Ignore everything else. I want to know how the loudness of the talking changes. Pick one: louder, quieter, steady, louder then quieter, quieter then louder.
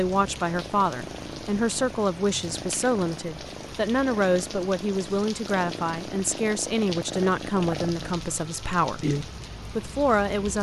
steady.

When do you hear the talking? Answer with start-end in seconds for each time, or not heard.
0.0-10.5.